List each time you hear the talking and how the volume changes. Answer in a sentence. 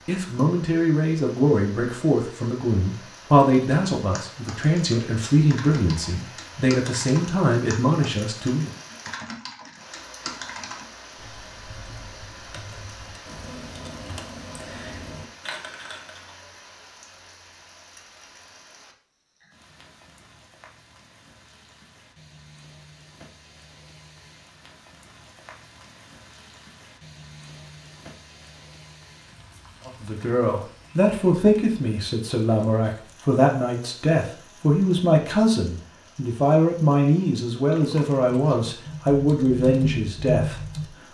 The talking can be heard from 0.0 to 8.7 s, at a steady volume; and from 29.9 to 40.6 s, at a steady volume.